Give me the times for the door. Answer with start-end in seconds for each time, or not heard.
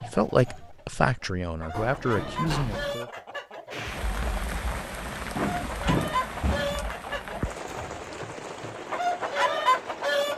1.7-3.0, 5.3-6.8.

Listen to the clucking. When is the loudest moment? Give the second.
10 s.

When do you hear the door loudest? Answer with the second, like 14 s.
6 s.